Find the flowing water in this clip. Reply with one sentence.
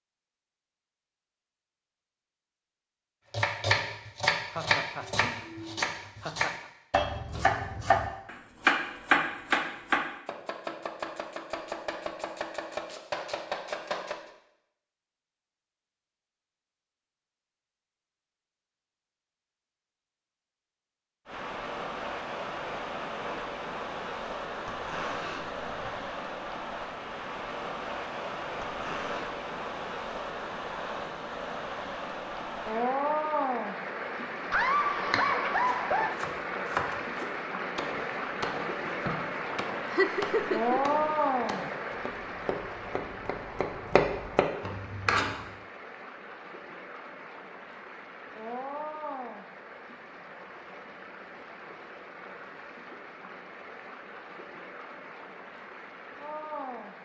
You can hear the flowing water from 21.2 to 57.0 s.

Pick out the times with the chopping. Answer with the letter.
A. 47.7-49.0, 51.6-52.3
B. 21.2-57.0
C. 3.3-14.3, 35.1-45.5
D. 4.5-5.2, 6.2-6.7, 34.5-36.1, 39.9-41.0
C.